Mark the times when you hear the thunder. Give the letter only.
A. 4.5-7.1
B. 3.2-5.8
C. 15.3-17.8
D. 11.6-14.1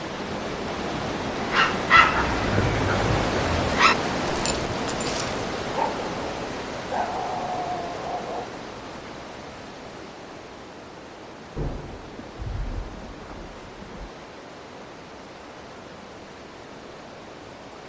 D.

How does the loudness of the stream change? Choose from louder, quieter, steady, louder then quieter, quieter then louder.
quieter.